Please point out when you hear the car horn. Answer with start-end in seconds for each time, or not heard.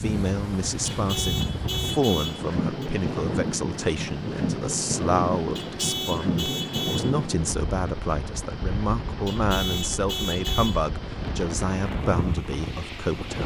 0.8-2.9, 5.5-7.2, 9.2-10.8.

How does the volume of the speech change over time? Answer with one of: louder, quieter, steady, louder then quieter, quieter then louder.
steady.